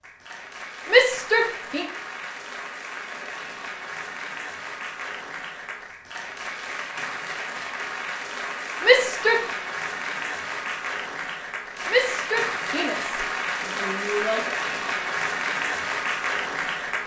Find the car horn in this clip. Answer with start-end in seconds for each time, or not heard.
not heard.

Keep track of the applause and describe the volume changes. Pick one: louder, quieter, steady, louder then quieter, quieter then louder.
louder.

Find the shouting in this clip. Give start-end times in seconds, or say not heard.
0.8-1.9, 8.8-9.4, 11.8-14.5.